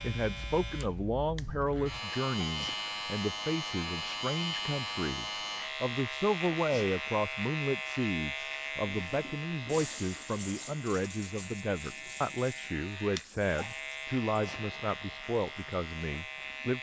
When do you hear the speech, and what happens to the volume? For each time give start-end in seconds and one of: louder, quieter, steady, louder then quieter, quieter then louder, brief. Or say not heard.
0.0-16.7 steady.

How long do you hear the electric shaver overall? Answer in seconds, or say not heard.
17 s.